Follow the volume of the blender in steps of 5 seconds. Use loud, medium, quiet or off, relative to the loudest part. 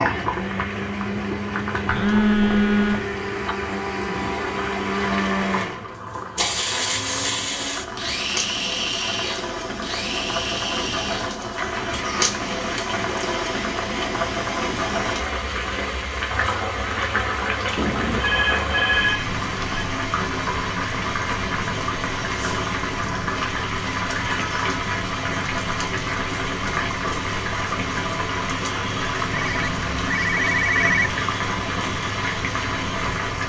loud, loud, medium, medium, medium, medium, medium.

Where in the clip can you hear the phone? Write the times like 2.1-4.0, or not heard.
1.9-3.0, 17.8-19.9, 29.3-31.1.